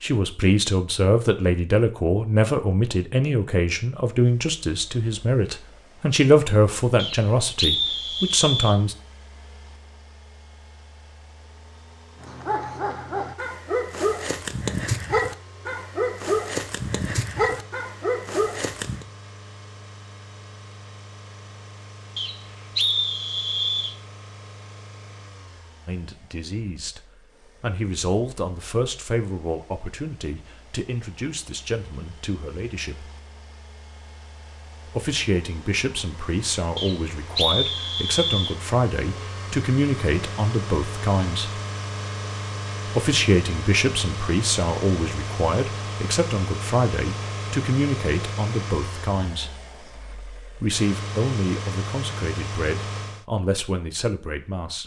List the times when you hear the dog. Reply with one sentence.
The dog can be heard from 12.2 to 19.1 s.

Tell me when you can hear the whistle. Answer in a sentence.
The whistle can be heard from 7.0 to 8.8 s, from 22.1 to 23.9 s and from 36.8 to 38.5 s.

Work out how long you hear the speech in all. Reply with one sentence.
The speech can be heard for 34 seconds in total.